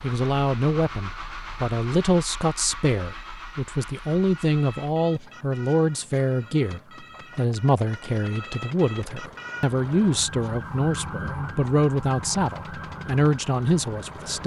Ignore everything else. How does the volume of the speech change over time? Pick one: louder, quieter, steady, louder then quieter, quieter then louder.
steady.